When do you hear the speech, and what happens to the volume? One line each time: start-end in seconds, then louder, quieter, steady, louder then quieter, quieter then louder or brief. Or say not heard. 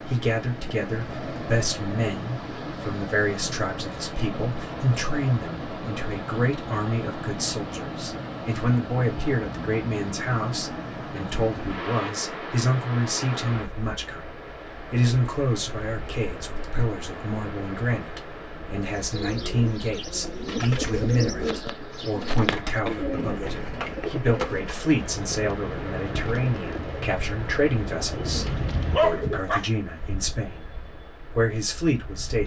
0.0-32.4 steady.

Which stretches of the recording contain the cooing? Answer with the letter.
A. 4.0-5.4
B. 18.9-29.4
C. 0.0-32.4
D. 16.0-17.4
B.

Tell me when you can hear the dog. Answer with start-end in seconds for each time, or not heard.
28.4-29.7.